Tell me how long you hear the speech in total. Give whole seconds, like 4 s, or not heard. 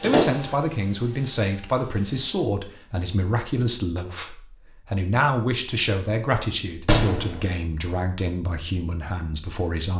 10 s.